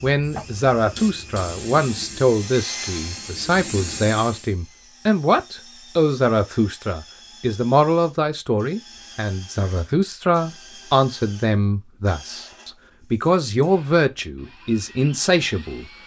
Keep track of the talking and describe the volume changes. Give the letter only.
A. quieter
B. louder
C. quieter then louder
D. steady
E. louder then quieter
D.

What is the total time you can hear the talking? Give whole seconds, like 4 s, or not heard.
16 s.